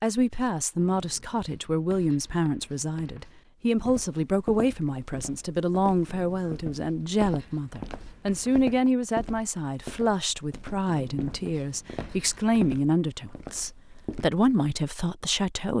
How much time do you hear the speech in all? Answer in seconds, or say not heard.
16 s.